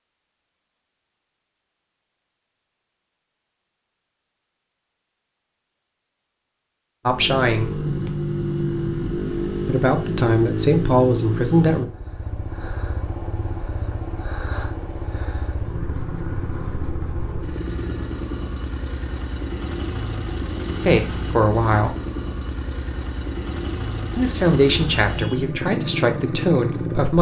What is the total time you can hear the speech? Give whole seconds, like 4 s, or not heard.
7 s.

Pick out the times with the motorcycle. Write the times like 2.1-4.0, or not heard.
7.0-27.1.